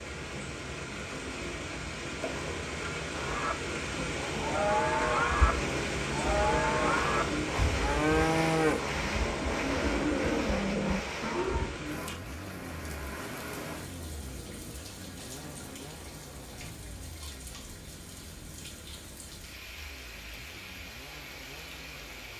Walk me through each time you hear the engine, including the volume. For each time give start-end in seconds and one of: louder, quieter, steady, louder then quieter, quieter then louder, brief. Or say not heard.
0.0-22.3 louder then quieter.